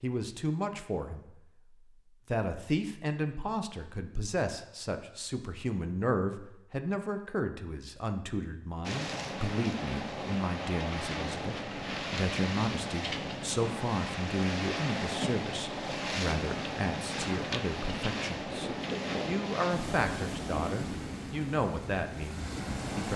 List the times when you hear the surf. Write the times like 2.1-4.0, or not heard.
8.8-23.1.